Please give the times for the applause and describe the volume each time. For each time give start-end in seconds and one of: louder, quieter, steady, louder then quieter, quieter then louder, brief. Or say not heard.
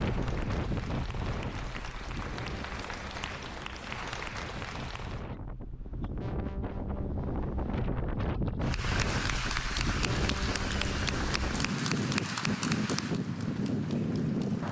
0.0-5.3 louder
8.6-14.6 quieter.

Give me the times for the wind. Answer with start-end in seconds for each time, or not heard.
0.0-14.6.